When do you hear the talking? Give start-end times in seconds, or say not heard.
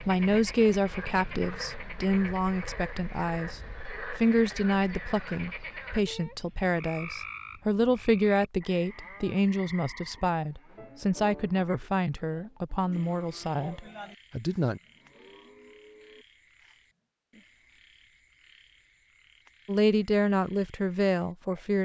0.0-14.8, 19.6-21.8.